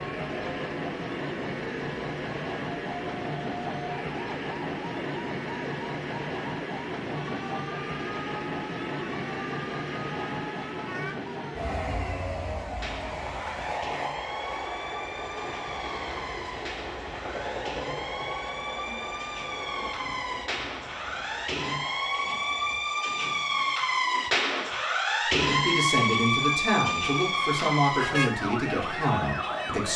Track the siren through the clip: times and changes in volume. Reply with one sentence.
The siren can be heard from 0.0 to 29.9 s, getting louder.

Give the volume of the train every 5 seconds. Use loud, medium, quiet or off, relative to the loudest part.
loud, loud, loud, loud, medium, medium.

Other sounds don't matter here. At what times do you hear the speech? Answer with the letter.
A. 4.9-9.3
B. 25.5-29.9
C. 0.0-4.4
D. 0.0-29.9
B.